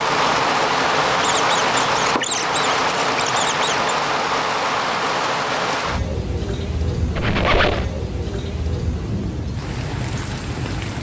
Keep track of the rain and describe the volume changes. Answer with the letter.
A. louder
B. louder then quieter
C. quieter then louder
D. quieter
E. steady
D.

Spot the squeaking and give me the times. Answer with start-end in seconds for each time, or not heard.
1.2-4.0, 7.2-7.8.